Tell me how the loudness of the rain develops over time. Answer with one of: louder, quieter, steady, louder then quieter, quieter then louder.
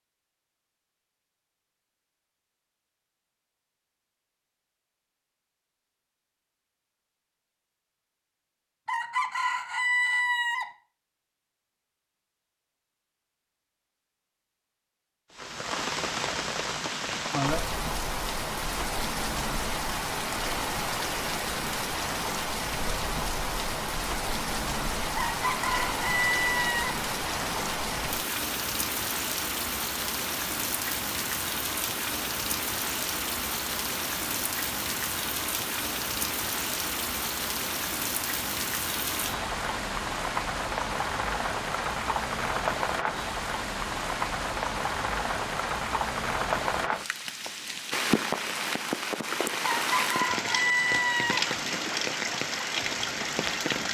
steady.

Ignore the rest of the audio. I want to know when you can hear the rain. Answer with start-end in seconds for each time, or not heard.
15.3-53.8.